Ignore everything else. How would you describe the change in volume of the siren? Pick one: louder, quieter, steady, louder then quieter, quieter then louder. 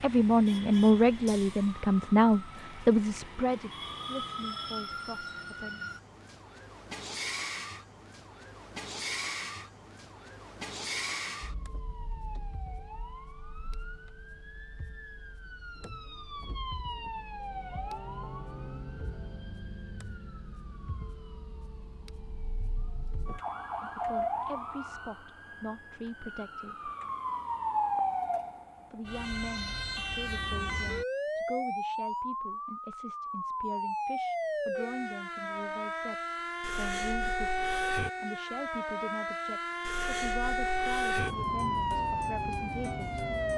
louder.